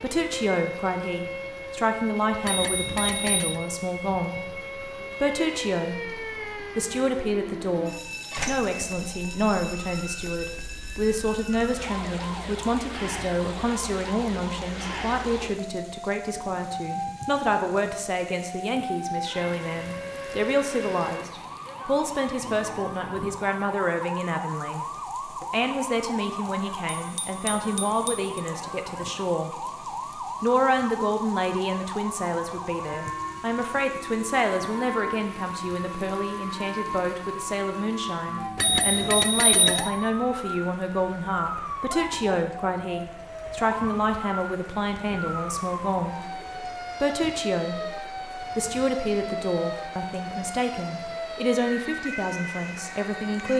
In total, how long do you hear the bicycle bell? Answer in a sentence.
You can hear the bicycle bell for 4 seconds altogether.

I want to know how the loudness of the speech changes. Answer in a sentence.
The loudness of the speech stays about the same.